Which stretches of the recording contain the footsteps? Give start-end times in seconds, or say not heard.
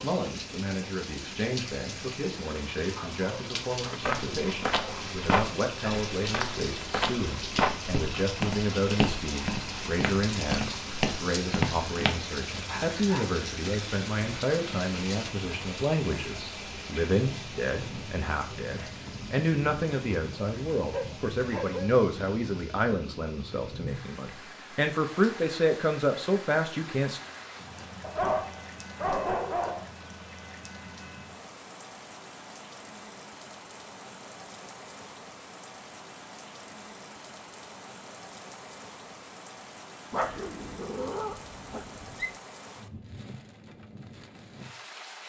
4.0-12.2.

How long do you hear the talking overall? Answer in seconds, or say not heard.
27 s.